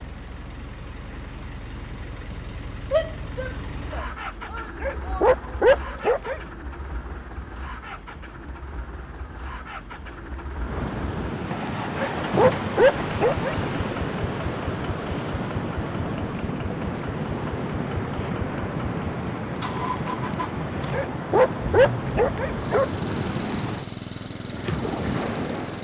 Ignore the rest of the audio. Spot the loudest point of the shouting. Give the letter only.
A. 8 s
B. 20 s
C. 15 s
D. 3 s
D.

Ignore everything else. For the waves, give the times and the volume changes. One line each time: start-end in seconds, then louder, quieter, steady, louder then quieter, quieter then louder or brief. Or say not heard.
0.0-25.8 louder.